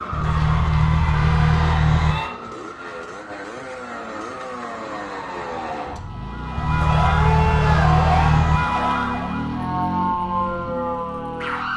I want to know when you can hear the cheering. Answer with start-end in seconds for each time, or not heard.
0.2-2.3, 6.8-8.4.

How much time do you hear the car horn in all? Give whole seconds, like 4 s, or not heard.
4 s.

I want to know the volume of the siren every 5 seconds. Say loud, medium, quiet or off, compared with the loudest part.
medium, loud, loud.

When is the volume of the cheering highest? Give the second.
8 s.